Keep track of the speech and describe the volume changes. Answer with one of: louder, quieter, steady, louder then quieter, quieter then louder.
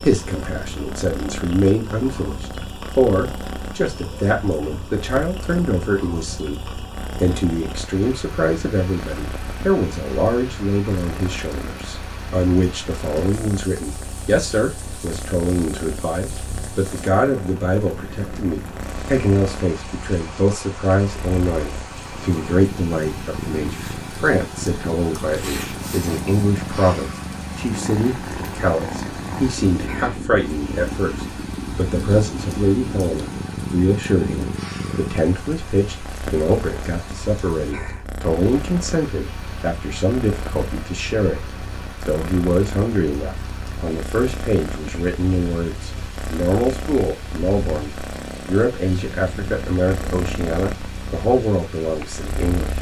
steady.